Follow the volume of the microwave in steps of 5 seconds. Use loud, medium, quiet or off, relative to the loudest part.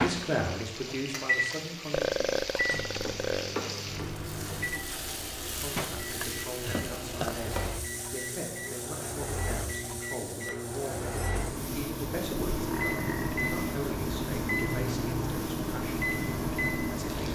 loud, medium, loud, loud.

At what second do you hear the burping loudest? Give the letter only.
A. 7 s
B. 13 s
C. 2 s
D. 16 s
C.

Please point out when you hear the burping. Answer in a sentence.
You can hear the burping from 1.9 to 3.5 s, from 6.2 to 7.3 s and from 12.2 to 13.4 s.